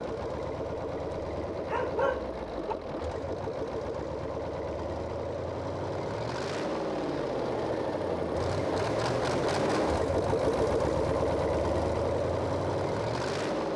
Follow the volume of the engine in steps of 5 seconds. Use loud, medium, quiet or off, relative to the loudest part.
medium, loud, loud.